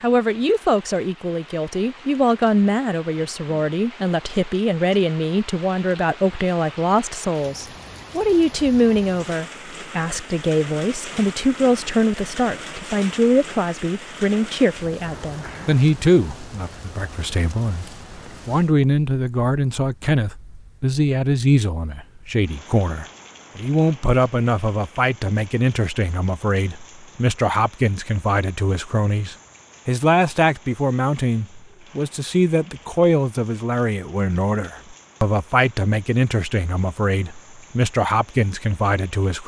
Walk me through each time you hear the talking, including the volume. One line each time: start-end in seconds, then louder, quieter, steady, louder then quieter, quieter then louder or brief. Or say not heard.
0.0-39.4 steady.